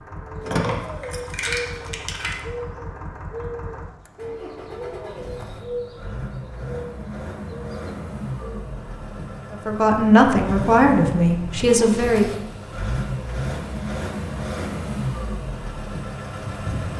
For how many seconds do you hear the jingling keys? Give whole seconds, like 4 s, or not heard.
2 s.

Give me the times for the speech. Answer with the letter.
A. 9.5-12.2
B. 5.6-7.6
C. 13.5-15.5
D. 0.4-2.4
A.